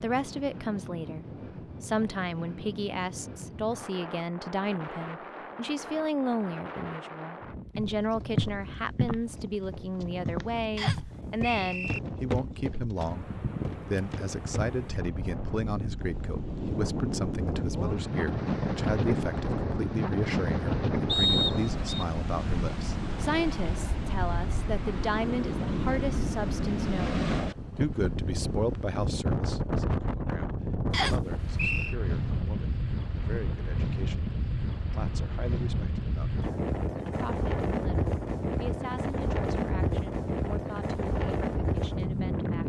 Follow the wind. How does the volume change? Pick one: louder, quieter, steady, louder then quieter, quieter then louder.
louder.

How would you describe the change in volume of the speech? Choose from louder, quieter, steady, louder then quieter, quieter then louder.
quieter.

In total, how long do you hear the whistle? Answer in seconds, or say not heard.
3 s.